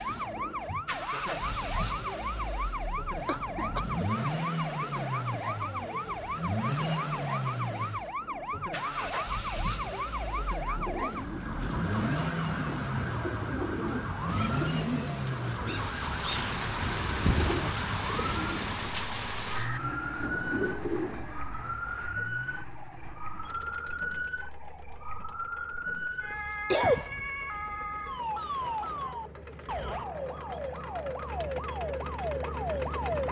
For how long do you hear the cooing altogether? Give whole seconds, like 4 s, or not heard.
11 s.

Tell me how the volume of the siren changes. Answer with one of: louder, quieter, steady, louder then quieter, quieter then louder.
steady.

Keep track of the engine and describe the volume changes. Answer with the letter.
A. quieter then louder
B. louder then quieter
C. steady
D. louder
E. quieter
E.